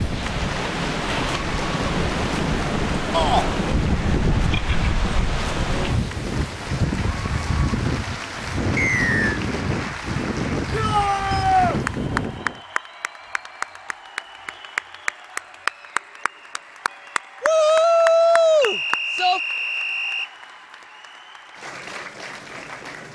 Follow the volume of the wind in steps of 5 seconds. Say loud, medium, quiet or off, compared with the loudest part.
loud, loud, loud, off, off.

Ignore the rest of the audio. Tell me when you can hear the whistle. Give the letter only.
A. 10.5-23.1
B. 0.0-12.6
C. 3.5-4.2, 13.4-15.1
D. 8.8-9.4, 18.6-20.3
D.